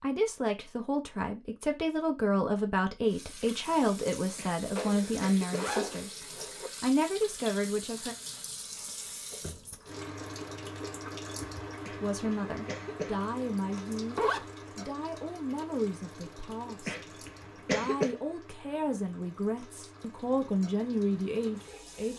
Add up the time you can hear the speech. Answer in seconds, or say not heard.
18 s.